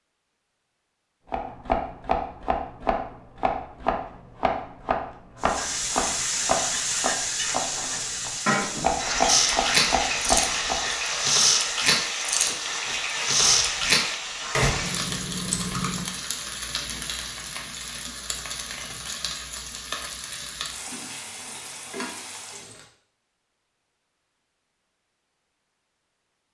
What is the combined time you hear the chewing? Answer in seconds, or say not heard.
7 s.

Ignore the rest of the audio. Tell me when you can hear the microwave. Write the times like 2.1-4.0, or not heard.
not heard.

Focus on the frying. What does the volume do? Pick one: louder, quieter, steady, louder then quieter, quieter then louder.
quieter.